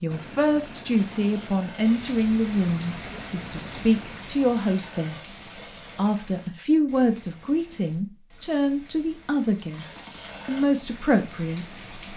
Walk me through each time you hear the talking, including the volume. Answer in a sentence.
You can hear the talking from 0.0 to 11.8 s, at a steady volume.